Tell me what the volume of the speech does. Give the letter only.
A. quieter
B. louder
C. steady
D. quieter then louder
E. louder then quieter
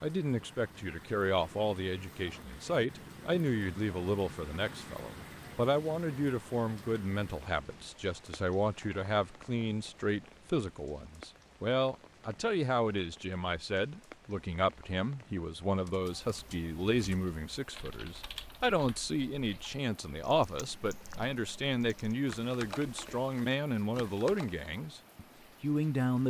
C.